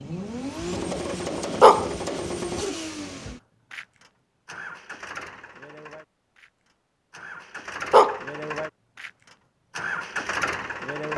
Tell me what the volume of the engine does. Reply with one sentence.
The volume of the engine goes down, then up.